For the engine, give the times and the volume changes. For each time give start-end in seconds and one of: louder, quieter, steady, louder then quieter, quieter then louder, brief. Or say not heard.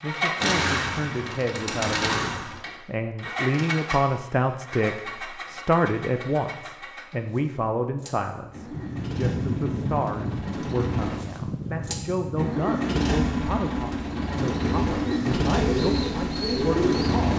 0.0-17.3 quieter then louder.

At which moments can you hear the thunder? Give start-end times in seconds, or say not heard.
8.7-12.5.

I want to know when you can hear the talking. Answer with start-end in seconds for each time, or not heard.
0.0-17.3.